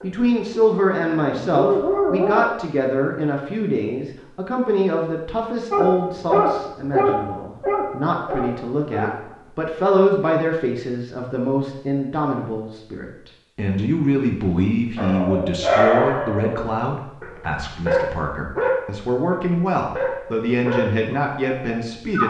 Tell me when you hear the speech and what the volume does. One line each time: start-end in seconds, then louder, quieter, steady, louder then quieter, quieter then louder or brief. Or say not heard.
0.0-22.2 steady.